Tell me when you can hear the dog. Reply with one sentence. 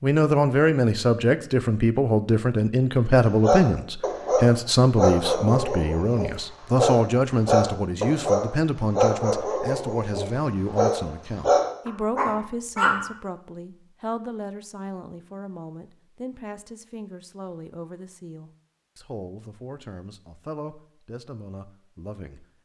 The dog can be heard from 3.4 to 13.1 s.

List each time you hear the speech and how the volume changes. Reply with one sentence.
The speech can be heard from 0.0 to 22.4 s, getting quieter.